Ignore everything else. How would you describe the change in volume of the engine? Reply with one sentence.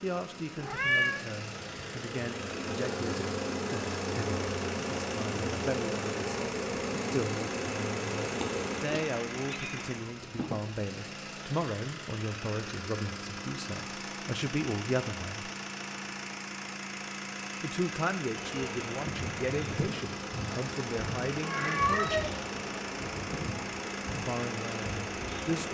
The loudness of the engine stays about the same.